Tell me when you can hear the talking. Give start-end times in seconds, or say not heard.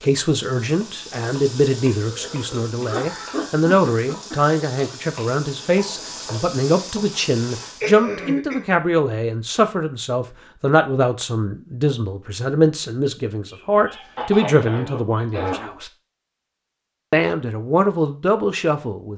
0.0-15.9, 17.1-19.1.